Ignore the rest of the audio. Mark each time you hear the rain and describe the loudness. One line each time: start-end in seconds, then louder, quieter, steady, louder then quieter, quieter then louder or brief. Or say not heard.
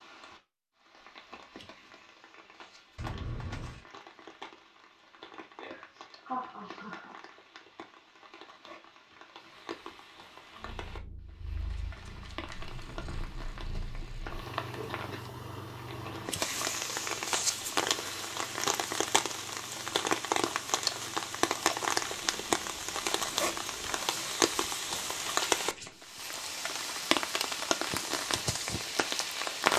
0.0-29.7 louder.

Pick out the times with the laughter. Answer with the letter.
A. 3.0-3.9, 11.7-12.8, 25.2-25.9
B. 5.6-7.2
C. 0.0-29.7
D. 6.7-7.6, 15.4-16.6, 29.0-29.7
B.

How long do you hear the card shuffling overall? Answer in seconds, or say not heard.
3 s.